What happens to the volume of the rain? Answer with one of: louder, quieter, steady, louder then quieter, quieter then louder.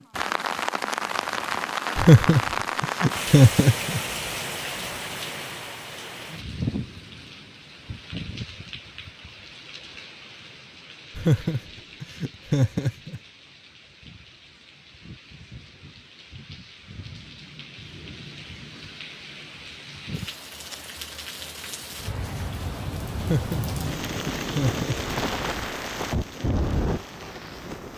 quieter then louder.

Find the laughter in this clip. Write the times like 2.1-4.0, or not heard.
1.9-4.0, 11.2-13.2, 23.1-25.1.